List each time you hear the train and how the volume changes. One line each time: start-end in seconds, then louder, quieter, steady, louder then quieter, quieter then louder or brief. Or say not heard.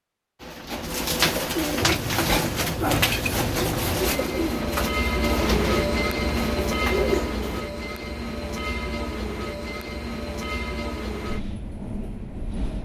1.8-12.8 louder then quieter.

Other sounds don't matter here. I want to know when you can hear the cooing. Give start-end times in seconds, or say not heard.
0.4-7.7.